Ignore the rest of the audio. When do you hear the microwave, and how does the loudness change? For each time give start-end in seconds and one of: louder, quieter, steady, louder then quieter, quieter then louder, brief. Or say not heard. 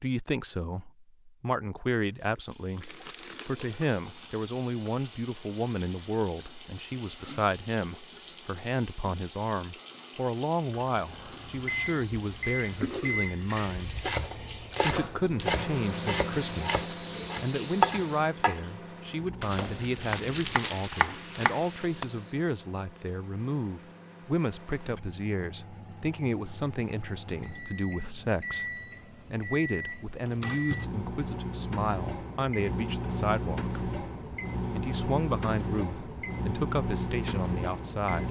10.7-38.2 quieter then louder.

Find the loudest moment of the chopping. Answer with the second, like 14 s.
18 s.